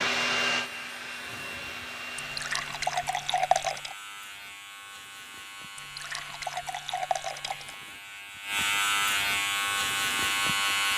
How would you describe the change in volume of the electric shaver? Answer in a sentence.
The volume of the electric shaver goes up.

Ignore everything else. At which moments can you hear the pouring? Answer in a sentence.
You can hear the pouring from 2.1 to 4.0 s and from 5.8 to 7.8 s.